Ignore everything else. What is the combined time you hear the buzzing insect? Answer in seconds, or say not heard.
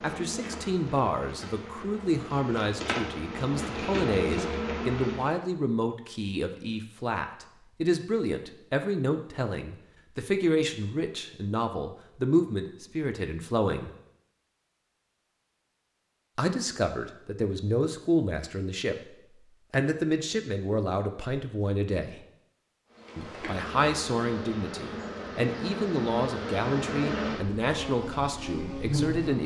12 s.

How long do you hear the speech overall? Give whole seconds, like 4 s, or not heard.
26 s.